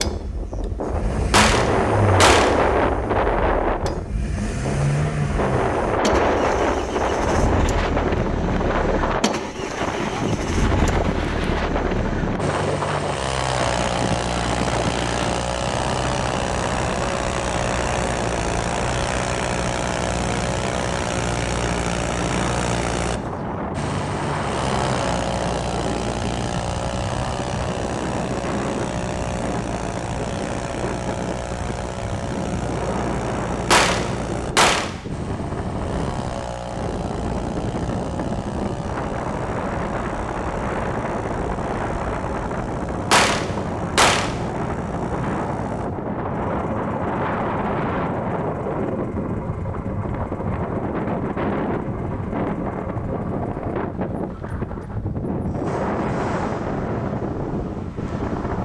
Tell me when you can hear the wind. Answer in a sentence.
You can hear the wind from 0.0 to 58.5 s.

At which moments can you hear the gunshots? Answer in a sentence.
The gunshots can be heard from 1.3 to 2.6 s, from 33.7 to 35.0 s and from 43.1 to 44.5 s.